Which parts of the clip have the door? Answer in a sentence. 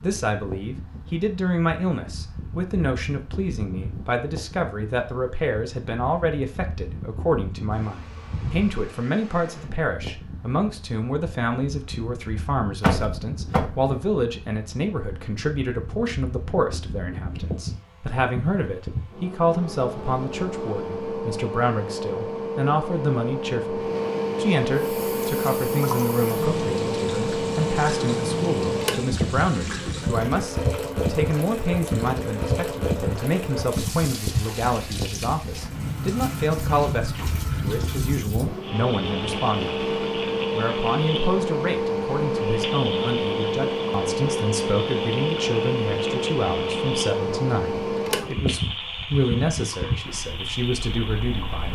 You can hear the door from 12.8 to 13.8 s.